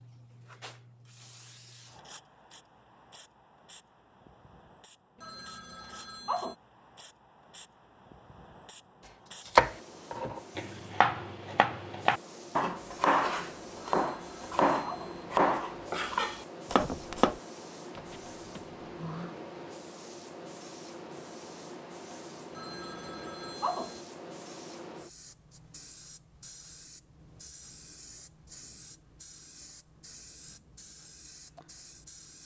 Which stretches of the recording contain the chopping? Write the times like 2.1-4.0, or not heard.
9.4-17.4.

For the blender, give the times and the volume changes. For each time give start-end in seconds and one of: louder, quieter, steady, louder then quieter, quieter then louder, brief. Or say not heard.
not heard.